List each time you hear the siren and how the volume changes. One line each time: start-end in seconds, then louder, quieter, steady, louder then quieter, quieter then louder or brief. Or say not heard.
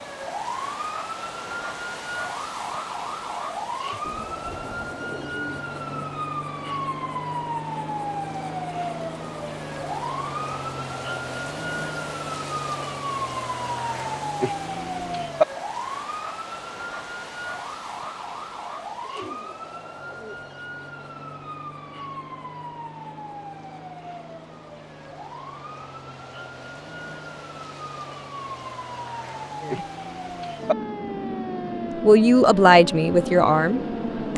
0.0-34.3 quieter then louder.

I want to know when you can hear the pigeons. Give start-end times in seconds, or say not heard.
4.0-6.0, 19.0-20.4.